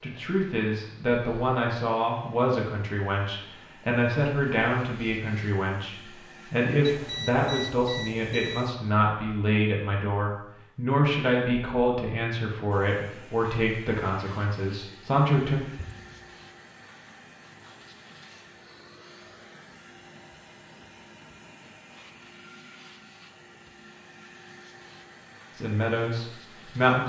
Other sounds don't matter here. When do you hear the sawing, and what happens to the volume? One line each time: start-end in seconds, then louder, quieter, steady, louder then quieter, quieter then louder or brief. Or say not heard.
not heard.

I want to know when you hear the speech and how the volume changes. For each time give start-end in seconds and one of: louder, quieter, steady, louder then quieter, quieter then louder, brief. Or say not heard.
0.0-15.6 steady
25.6-27.0 brief.